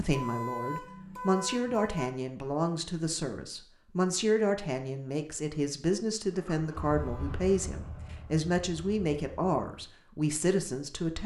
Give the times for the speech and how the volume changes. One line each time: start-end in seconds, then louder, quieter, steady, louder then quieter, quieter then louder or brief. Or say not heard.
0.0-11.2 steady.